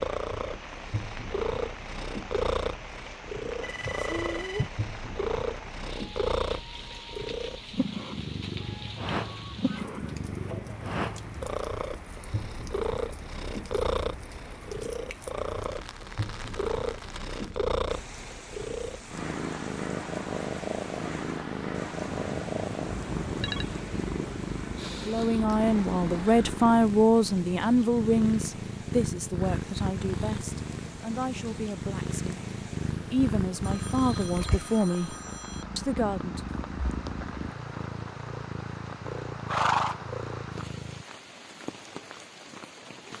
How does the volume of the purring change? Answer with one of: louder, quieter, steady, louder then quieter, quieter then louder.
steady.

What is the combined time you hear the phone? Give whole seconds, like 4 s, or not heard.
5 s.